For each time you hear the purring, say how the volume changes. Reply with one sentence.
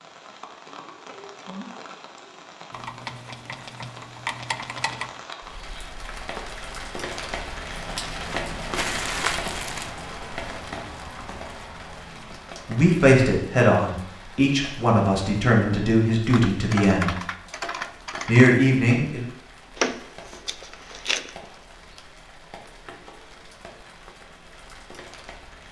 You can't hear the purring here.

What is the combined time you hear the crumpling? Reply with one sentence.
You can hear the crumpling for 3 seconds altogether.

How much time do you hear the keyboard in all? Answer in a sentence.
The keyboard can be heard for 5 seconds in total.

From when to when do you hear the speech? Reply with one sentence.
You can hear the speech from 12.7 to 17.1 s and from 18.2 to 19.2 s.